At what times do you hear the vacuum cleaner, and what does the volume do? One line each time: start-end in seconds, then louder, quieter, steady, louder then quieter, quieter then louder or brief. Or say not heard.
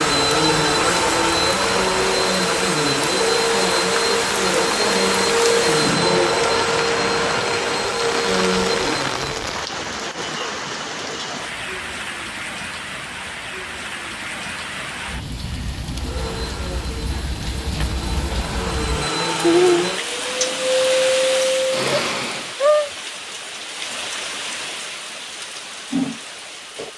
0.0-9.6 steady
15.9-22.6 louder.